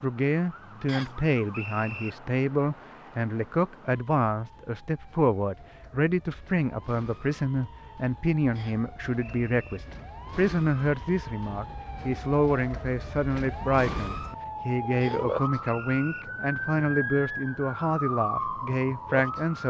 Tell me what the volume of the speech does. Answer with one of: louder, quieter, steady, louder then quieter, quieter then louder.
steady.